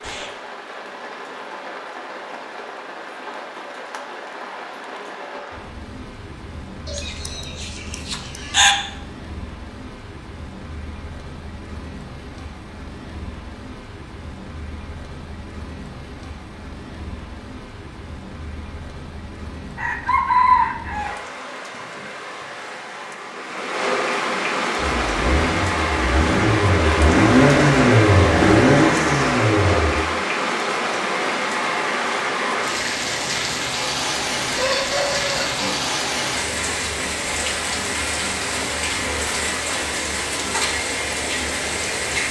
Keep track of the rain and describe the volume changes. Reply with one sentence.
The loudness of the rain goes up.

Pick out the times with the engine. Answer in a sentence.
You can hear the engine from 24.8 to 30.0 s.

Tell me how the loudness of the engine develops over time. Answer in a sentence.
The volume of the engine goes up.